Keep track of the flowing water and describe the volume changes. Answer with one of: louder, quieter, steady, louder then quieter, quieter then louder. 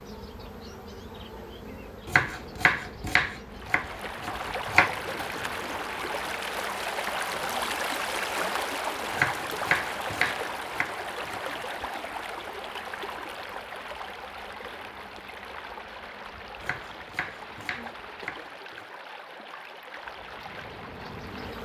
quieter.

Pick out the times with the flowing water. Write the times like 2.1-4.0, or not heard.
3.5-21.6.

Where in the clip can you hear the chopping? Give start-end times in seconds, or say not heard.
2.0-4.9, 9.1-11.6, 16.6-18.9.